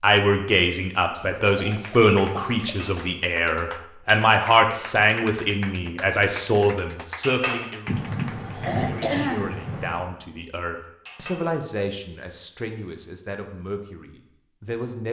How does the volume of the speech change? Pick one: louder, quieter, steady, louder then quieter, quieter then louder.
quieter.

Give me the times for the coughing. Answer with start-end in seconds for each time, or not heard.
1.1-3.0, 7.8-10.1.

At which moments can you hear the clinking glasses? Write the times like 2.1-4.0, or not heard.
2.6-3.1, 7.2-7.8, 11.1-11.6.